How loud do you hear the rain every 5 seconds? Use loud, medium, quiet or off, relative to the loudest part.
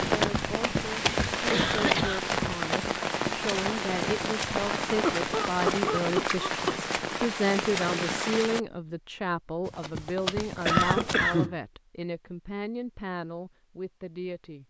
loud, loud, off.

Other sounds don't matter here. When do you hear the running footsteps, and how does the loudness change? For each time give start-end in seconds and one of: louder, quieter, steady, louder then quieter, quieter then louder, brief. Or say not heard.
0.0-4.8 quieter
9.7-11.4 brief.